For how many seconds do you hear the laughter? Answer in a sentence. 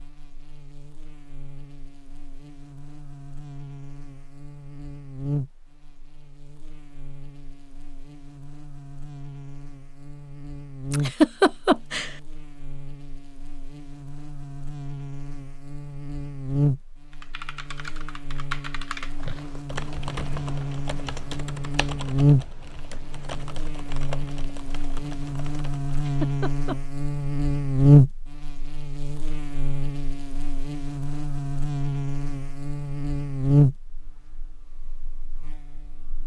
The laughter can be heard for 2 seconds in total.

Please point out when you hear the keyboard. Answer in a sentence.
The keyboard can be heard from 17.1 to 25.9 s.